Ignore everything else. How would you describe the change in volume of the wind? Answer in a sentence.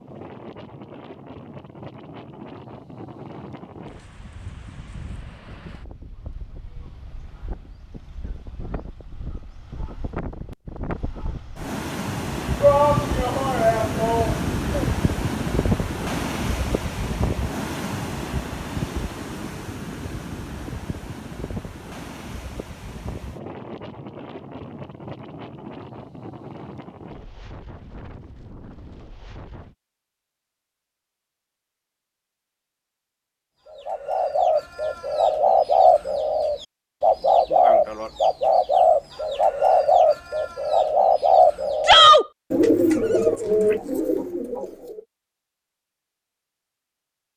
The loudness of the wind goes up, then down.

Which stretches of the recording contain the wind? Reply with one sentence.
You can hear the wind from 0.0 to 29.8 s.